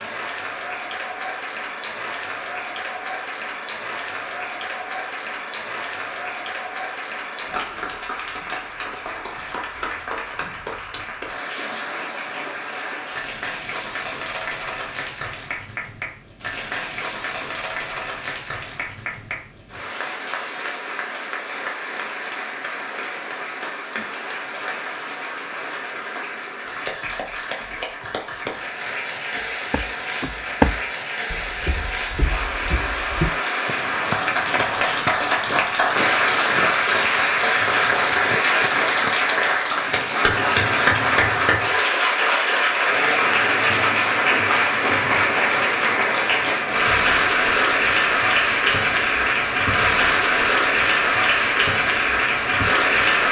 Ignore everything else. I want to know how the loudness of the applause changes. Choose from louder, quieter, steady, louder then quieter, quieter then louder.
louder.